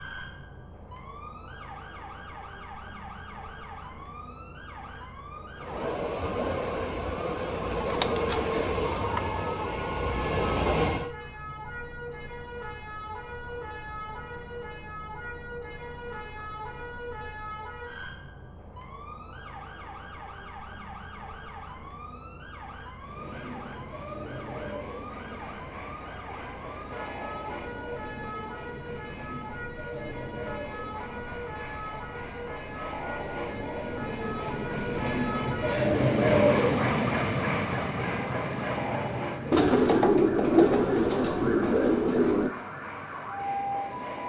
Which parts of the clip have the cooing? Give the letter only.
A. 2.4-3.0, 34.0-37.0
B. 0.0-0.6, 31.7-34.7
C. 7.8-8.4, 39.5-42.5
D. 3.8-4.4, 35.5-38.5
C.